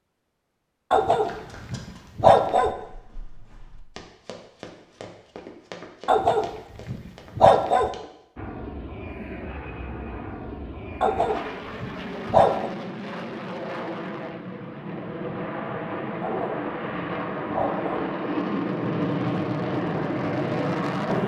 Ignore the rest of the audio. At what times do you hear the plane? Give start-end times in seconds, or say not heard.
8.3-21.2.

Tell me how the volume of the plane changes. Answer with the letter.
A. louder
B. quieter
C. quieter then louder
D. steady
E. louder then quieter
A.